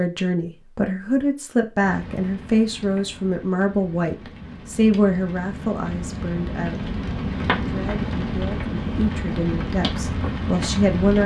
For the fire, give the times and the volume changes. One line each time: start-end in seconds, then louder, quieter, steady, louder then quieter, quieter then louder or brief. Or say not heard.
1.8-11.2 louder.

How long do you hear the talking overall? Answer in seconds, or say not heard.
11 s.